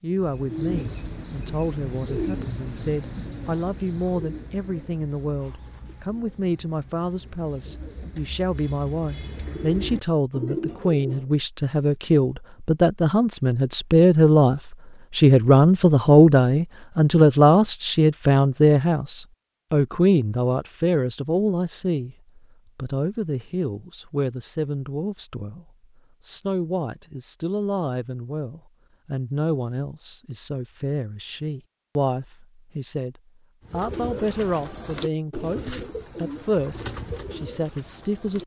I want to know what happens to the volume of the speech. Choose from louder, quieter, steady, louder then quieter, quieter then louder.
louder then quieter.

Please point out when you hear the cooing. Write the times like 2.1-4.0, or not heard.
0.1-11.3, 33.6-38.4.